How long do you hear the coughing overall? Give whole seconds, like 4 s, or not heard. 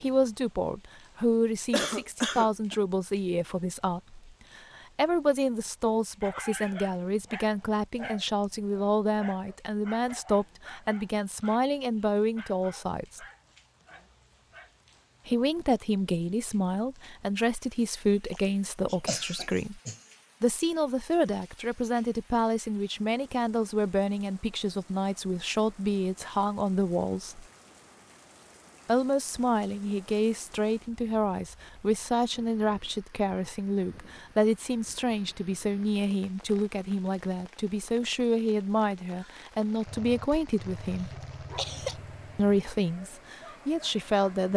4 s.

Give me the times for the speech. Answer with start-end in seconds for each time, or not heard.
0.0-13.2, 15.2-19.8, 20.4-27.4, 28.9-41.1, 42.4-44.5.